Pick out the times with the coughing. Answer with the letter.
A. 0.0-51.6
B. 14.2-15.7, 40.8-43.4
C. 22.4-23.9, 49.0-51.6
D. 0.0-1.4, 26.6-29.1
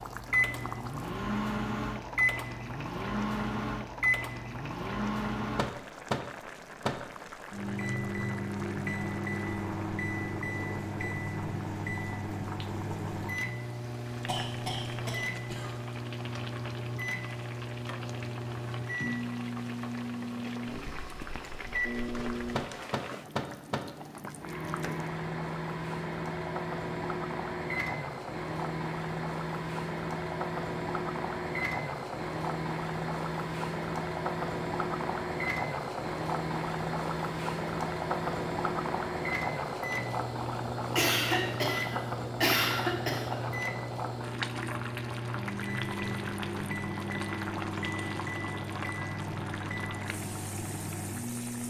B.